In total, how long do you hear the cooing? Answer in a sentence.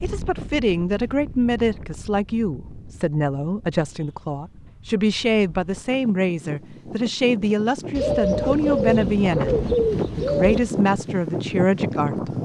You can hear the cooing for 3 seconds altogether.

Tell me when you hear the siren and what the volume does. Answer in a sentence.
The siren can't be heard in this clip.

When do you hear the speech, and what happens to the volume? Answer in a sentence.
You can hear the speech from 0.0 to 9.6 s, at a steady volume; and briefly from 10.2 to 12.3 s.